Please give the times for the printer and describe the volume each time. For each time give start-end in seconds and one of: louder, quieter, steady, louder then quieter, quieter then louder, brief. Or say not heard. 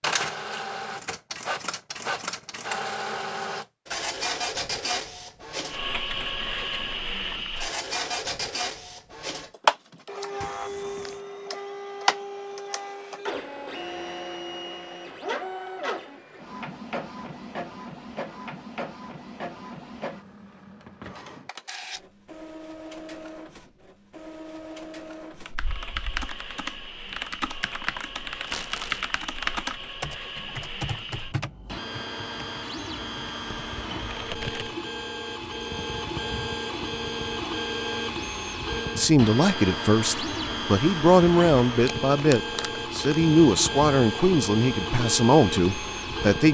0.0-46.4 quieter then louder.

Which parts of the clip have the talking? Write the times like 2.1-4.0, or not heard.
39.0-46.4.